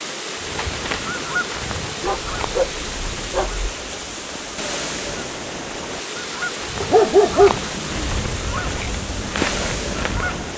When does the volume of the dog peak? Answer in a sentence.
The loudest moment of the dog is at 7 seconds.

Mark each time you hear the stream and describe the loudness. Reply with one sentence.
The stream can be heard from 0.0 to 10.5 s, at a steady volume.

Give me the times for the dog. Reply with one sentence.
The dog can be heard from 2.0 to 3.8 s and from 6.8 to 8.1 s.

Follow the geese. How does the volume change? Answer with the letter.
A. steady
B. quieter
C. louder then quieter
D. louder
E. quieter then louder
E.